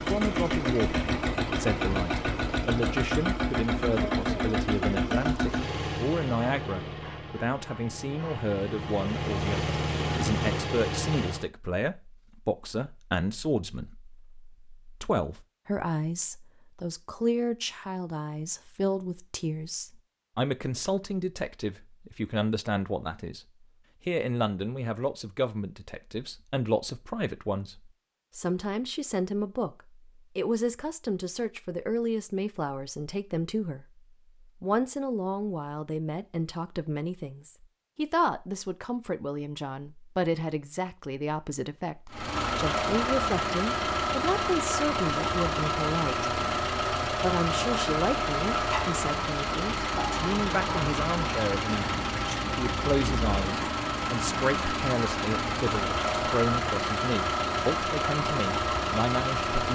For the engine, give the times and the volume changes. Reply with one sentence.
You can hear the engine from 0.0 to 11.5 s, getting quieter then louder; and from 42.1 to 59.7 s, at a steady volume.